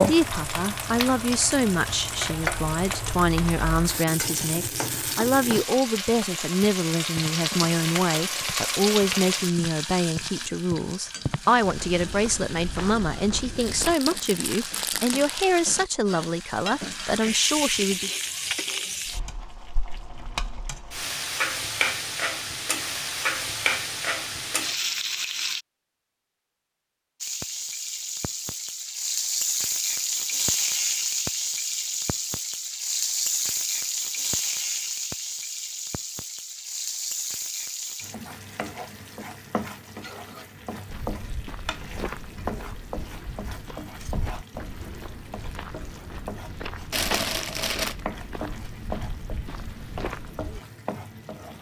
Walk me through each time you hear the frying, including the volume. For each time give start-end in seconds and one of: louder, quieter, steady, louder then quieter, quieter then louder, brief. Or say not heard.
0.0-25.6 quieter then louder
27.2-51.5 quieter.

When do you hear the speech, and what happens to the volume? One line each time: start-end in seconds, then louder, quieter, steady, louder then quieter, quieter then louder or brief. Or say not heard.
0.1-18.1 steady.